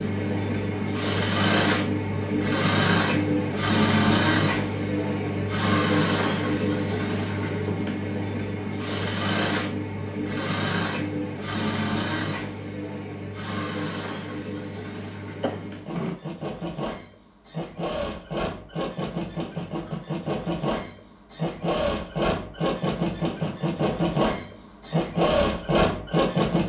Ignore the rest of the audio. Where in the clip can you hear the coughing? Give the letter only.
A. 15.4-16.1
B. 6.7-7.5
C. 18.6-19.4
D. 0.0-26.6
A.